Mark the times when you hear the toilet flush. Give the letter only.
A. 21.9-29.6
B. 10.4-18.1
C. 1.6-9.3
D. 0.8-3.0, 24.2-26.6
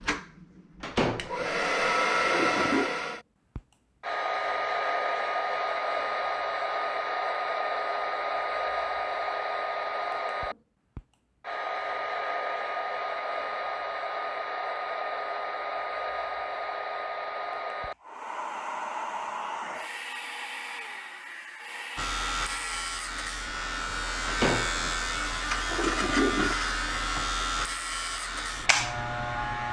D.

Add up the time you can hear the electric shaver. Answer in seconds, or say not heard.
8 s.